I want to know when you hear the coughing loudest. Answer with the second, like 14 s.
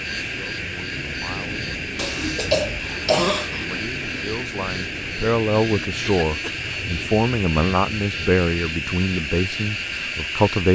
3 s.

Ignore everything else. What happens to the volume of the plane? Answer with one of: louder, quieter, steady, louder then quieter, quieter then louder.
steady.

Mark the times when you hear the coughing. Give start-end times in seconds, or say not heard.
1.9-3.8, 6.0-6.6.